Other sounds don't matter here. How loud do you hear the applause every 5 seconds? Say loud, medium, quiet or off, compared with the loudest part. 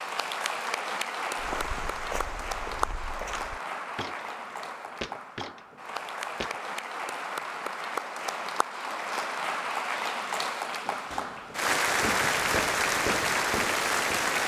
medium, medium, loud.